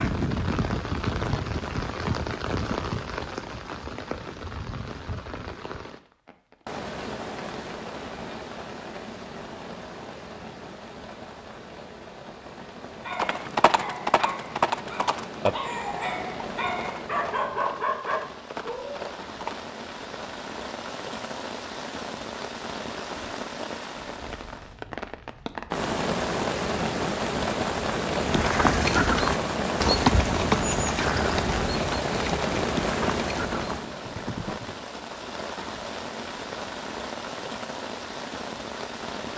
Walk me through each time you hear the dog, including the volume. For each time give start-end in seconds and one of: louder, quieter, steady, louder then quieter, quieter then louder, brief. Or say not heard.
13.0-19.1 quieter then louder.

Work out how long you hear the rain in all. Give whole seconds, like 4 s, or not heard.
39 s.